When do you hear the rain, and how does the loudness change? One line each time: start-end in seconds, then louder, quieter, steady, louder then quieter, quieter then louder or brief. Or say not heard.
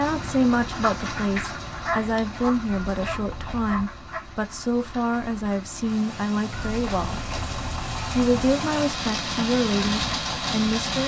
0.0-11.0 quieter then louder.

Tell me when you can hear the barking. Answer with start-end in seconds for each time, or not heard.
1.9-4.2.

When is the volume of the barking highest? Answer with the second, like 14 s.
2 s.